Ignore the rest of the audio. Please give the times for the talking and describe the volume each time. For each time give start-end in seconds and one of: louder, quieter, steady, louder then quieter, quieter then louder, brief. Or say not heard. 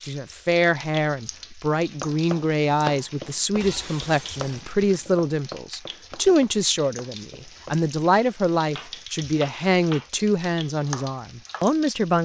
0.0-12.1 steady.